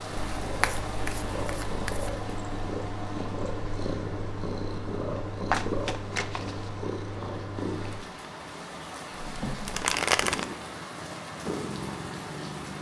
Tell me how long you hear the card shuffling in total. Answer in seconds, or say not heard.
4 s.